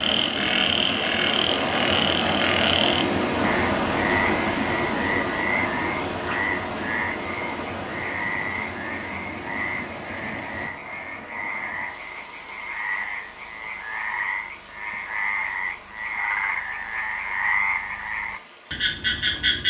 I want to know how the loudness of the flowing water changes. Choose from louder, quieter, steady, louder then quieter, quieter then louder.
quieter.